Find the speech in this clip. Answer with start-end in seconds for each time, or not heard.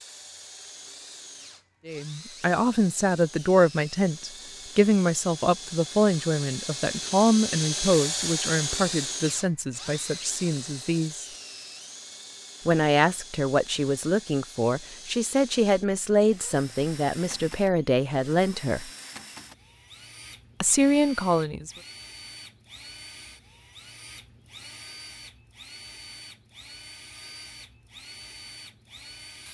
1.9-11.2, 12.7-18.9, 20.6-21.7.